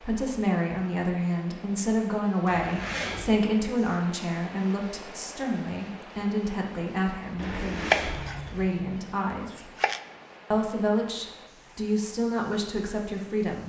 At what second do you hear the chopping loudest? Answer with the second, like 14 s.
8 s.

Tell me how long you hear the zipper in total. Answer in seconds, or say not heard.
2 s.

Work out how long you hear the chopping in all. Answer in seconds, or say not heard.
3 s.